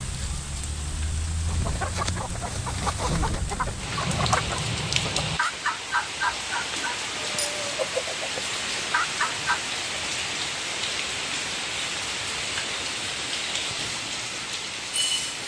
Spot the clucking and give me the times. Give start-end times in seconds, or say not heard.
1.4-9.6.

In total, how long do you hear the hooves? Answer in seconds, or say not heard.
not heard.